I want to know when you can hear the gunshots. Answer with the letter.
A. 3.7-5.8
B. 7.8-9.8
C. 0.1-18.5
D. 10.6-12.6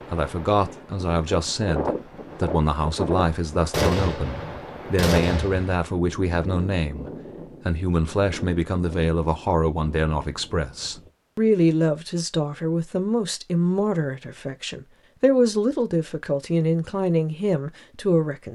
A.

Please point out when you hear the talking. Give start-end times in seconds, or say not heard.
0.1-18.5.